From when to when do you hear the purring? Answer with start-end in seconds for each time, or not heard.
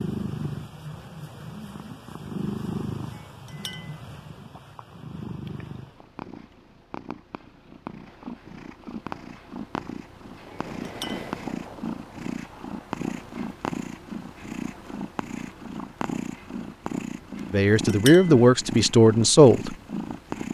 0.0-20.4.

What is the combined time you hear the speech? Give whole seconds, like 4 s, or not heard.
2 s.